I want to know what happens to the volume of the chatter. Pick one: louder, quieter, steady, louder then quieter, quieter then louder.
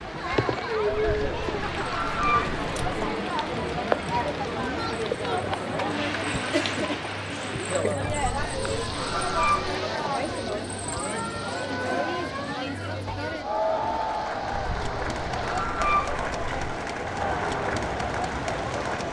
steady.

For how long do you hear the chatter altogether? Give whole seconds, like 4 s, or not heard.
19 s.